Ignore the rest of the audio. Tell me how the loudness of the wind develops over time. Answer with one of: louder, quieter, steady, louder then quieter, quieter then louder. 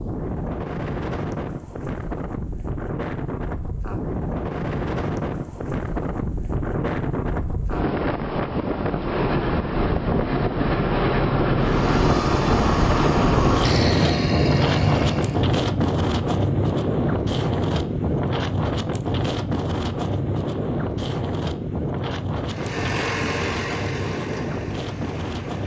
louder then quieter.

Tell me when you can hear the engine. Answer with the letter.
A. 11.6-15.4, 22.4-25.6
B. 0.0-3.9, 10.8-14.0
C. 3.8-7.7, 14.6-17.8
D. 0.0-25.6
A.